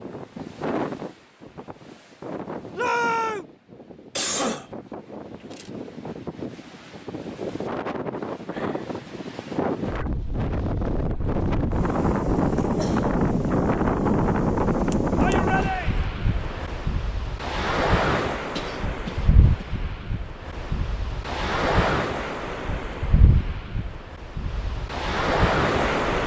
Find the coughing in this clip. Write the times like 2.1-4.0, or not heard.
4.2-5.7, 12.6-13.1, 18.6-19.6.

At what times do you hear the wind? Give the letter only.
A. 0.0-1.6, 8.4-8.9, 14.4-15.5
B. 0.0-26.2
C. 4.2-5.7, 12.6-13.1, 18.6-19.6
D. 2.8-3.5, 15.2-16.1
B.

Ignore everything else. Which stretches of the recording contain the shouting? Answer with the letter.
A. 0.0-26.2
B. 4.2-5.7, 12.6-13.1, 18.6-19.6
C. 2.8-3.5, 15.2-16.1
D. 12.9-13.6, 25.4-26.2
C.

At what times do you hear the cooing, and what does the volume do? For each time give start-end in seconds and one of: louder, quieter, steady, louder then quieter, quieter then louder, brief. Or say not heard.
not heard.